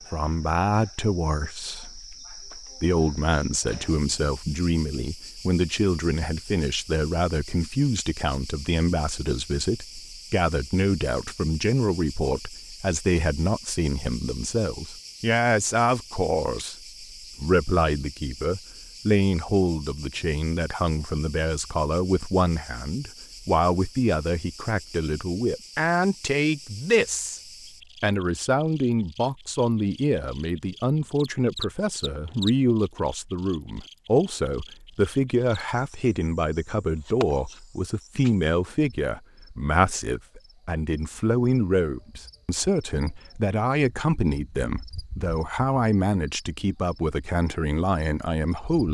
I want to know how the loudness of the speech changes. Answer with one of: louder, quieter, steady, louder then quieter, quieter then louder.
steady.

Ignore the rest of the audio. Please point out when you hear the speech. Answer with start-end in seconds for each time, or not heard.
0.1-27.4, 28.0-48.8.